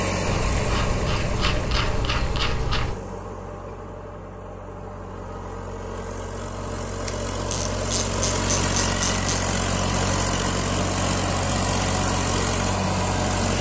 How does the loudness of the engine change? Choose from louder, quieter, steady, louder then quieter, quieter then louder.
quieter then louder.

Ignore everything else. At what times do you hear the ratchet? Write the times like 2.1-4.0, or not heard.
0.2-3.0, 7.0-9.4.